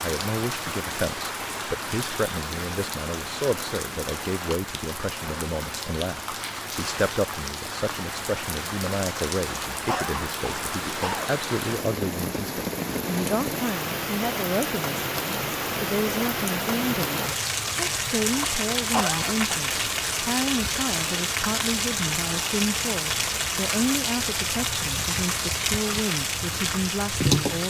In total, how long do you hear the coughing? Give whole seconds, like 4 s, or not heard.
2 s.